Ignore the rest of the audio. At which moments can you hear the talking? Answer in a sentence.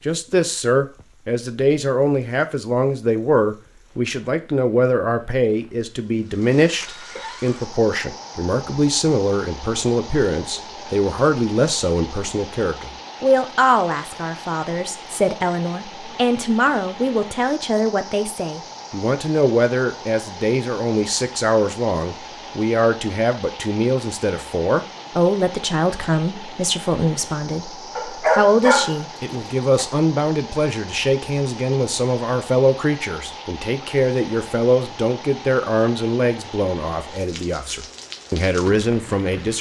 You can hear the talking from 0.1 to 39.5 s.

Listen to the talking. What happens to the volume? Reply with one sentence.
The volume of the talking stays about the same.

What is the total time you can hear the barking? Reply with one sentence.
The barking can be heard for 2 seconds in total.